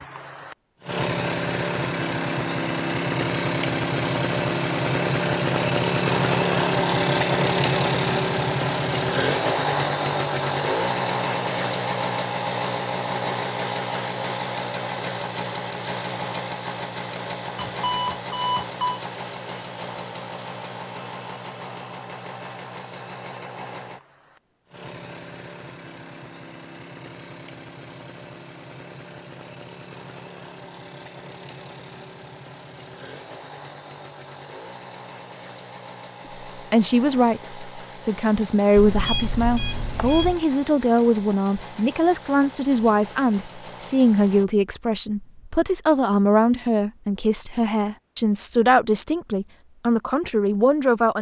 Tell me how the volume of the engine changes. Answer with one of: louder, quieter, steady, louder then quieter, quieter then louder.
quieter.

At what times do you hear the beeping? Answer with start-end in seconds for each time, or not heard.
17.7-19.0, 38.8-40.5.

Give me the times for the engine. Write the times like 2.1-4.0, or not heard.
0.0-44.5.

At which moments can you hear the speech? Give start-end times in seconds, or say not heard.
36.5-51.1.